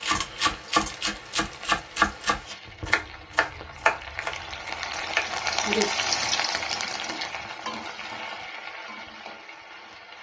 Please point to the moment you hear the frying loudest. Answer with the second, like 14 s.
6 s.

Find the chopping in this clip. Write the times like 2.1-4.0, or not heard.
0.0-5.9.